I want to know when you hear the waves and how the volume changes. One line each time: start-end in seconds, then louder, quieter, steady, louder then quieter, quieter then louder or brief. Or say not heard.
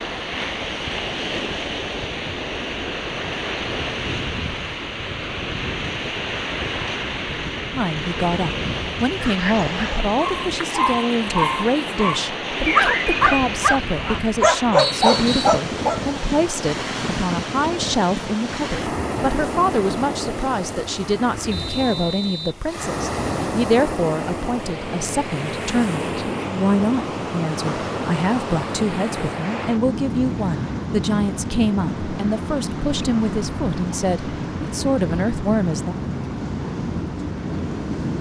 0.0-38.1 steady.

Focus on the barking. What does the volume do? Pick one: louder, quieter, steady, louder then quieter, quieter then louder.
louder.